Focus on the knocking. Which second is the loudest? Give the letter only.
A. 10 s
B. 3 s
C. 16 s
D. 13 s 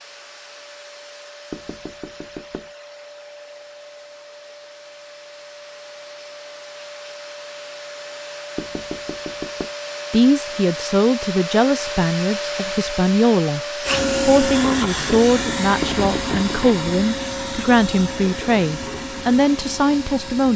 C.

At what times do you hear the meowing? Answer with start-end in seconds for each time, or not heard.
not heard.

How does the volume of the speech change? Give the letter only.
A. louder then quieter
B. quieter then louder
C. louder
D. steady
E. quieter
D.